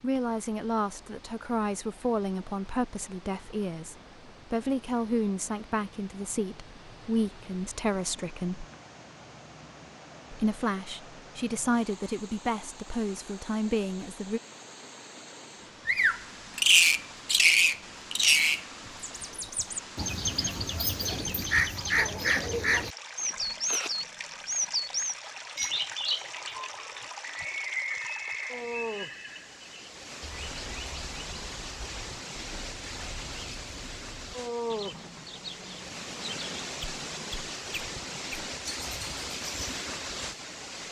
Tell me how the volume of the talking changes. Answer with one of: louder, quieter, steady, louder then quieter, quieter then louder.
steady.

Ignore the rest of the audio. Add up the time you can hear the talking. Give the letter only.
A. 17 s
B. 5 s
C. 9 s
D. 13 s
D.